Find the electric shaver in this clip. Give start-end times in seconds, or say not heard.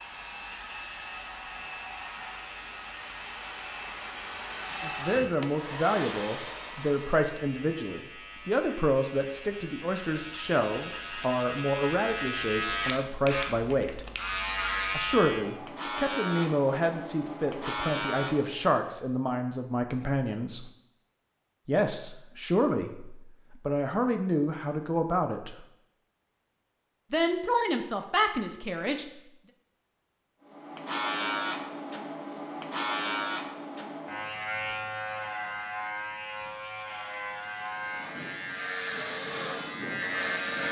0.0-18.7, 30.5-40.6.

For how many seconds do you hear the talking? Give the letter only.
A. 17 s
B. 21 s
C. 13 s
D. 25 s
B.